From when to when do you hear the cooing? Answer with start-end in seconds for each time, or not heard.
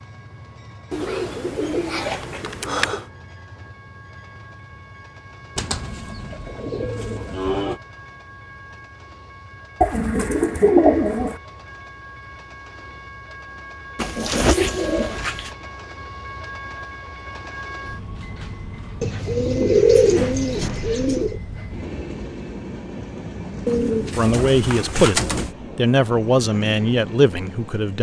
0.9-3.0, 5.5-7.8, 9.8-11.4, 13.9-15.5, 19.0-21.4, 23.6-25.5.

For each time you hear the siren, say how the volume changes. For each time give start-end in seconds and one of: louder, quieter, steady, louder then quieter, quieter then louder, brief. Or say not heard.
not heard.